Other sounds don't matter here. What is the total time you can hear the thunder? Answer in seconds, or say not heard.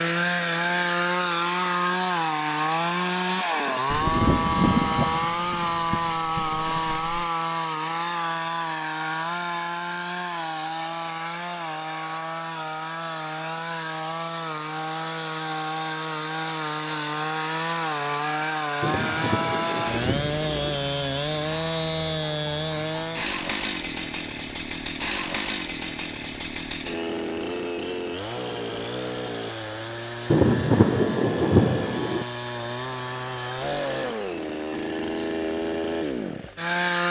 7 s.